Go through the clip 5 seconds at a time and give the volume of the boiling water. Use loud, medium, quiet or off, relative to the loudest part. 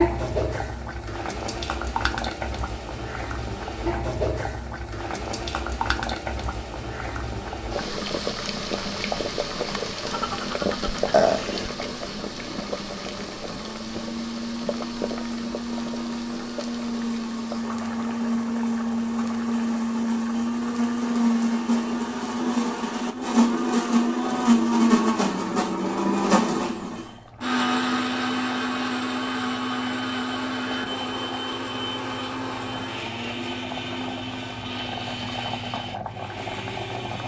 loud, loud, loud, medium, quiet, quiet, medium, medium.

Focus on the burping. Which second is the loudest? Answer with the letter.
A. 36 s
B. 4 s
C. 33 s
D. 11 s
D.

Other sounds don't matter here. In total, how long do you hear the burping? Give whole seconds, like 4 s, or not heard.
2 s.